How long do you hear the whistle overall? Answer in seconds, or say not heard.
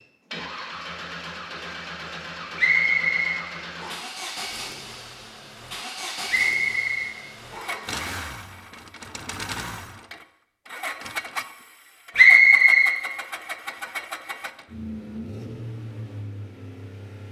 4 s.